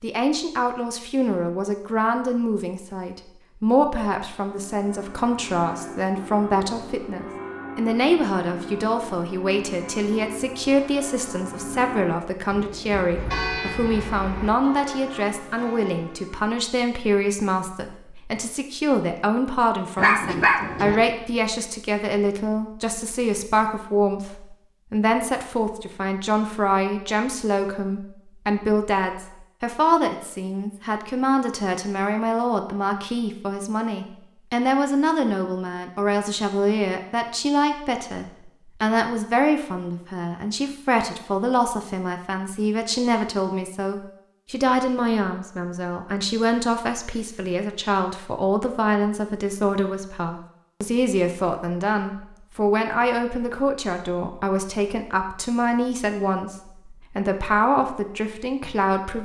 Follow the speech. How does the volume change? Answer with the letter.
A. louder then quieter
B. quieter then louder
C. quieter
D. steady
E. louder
D.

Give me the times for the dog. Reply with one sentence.
The dog can be heard from 19.9 to 21.0 s.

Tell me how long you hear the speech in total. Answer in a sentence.
You can hear the speech for 59 seconds altogether.